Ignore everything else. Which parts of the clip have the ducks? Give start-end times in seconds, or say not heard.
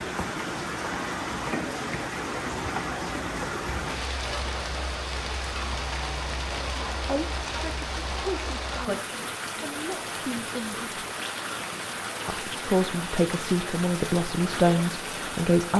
not heard.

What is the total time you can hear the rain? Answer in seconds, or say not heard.
16 s.